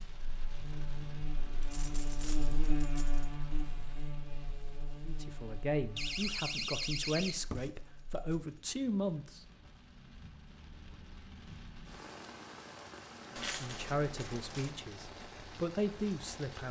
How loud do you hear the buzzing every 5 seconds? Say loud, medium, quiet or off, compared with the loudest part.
loud, medium, off, off.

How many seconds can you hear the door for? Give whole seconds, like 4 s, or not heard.
2 s.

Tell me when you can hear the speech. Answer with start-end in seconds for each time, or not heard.
5.0-9.4, 13.3-16.6.